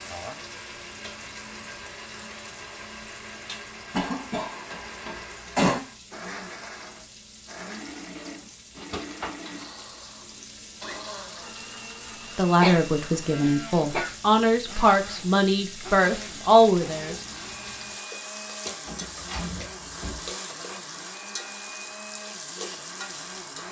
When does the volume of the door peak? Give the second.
19 s.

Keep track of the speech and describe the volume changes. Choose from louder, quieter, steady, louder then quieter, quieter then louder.
louder.